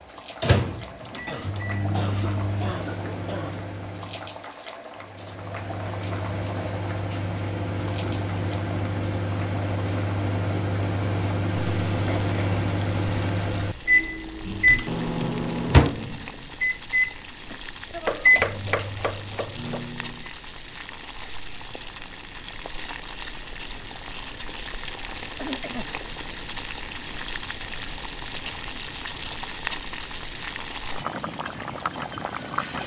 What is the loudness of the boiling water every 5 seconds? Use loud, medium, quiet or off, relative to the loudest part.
medium, medium, medium, medium, medium, loud, loud.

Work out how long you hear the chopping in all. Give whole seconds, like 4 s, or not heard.
2 s.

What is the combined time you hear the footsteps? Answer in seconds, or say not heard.
not heard.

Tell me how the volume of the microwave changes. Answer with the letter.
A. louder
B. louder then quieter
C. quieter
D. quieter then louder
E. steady
A.